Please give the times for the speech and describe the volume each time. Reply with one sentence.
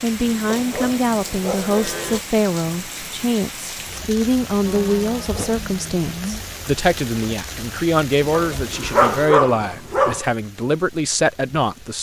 You can hear the speech from 0.0 to 11.9 s, at a steady volume.